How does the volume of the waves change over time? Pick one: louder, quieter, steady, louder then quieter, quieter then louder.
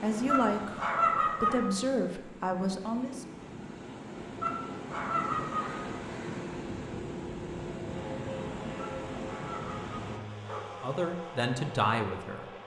louder.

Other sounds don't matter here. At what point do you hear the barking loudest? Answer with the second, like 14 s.
1 s.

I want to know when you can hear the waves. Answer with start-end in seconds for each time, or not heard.
0.0-10.2.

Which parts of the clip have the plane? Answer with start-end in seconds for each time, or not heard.
6.3-12.6.